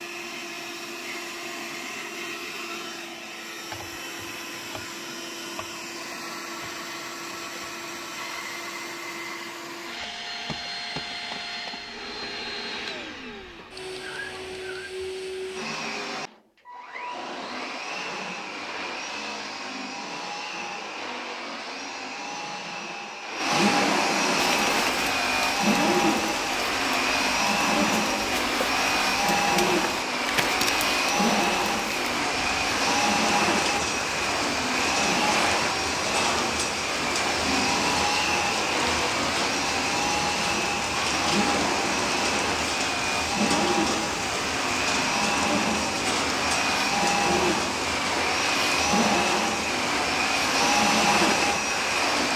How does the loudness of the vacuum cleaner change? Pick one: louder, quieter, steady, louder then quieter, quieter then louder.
louder.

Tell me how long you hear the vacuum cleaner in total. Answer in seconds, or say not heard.
52 s.